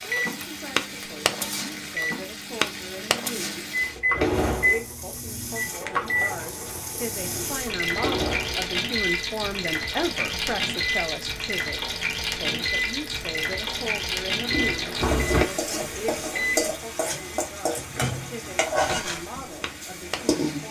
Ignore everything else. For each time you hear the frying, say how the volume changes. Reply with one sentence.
The frying can be heard from 0.0 to 20.6 s, getting louder.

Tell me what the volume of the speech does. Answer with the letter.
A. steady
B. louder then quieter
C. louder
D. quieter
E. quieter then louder
B.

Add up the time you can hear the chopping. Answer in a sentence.
You can't hear the chopping here.